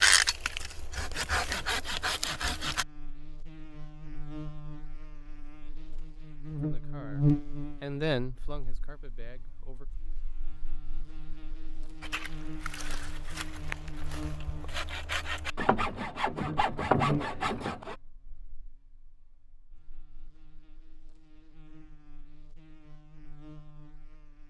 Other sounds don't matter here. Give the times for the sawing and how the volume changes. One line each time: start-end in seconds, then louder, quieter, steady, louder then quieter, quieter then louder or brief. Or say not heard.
0.0-2.9 brief
12.0-17.9 louder.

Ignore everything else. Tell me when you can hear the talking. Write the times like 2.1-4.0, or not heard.
6.6-9.8.